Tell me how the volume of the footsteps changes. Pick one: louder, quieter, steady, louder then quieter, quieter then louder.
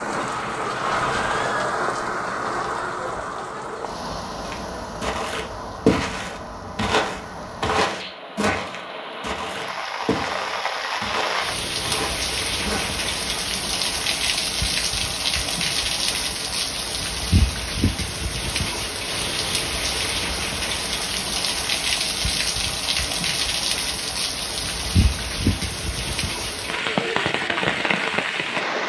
quieter.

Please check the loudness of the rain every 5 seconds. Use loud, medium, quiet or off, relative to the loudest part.
loud, medium, loud, loud, loud, loud.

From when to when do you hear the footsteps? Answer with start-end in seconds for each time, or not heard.
4.5-13.1.